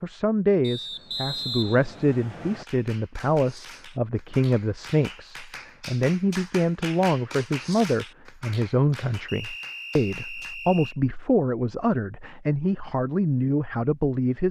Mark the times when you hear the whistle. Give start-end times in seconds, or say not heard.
0.6-2.6, 9.2-10.9.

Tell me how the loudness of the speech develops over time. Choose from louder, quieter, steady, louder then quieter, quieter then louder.
steady.